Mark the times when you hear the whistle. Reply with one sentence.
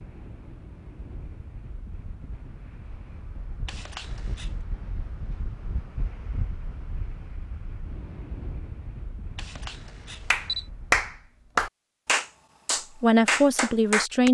You can't hear the whistle here.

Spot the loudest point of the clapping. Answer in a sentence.
The loudest moment of the clapping is at 11 seconds.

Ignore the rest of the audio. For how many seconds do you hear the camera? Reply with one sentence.
The camera can be heard for 2 seconds in total.